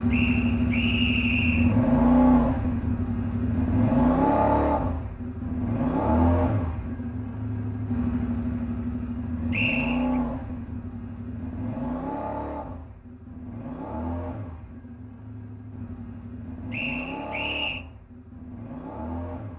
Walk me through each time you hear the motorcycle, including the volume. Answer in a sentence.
The motorcycle can be heard from 0.0 to 19.5 s, getting quieter.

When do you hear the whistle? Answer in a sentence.
You can hear the whistle from 0.1 to 1.8 s, from 9.5 to 10.2 s and from 16.7 to 17.9 s.